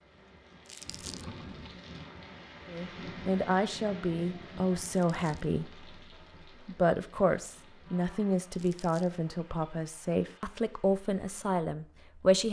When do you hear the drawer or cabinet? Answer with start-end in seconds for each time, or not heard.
0.8-1.8.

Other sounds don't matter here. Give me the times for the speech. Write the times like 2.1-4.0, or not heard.
2.6-5.9, 6.7-12.4.